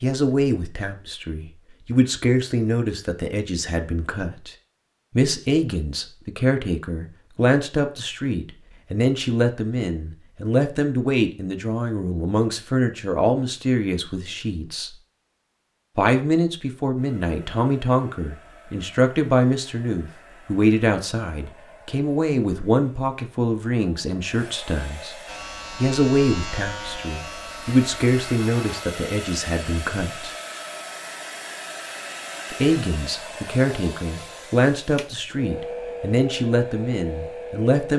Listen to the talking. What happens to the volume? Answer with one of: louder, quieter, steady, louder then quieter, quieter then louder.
steady.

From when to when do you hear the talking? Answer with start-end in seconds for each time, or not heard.
0.0-4.5, 5.2-14.9, 15.9-25.1, 25.8-30.3, 32.5-37.9.